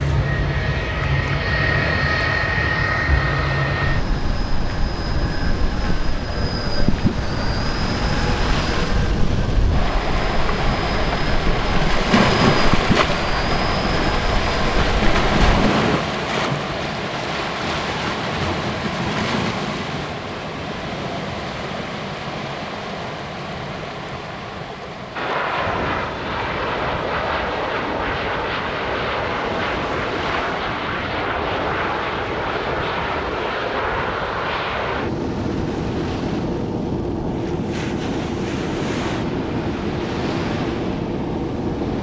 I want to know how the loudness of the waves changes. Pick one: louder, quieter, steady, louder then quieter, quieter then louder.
louder then quieter.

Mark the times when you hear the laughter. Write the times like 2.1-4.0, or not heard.
not heard.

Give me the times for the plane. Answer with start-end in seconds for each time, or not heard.
0.0-16.0, 25.1-41.9.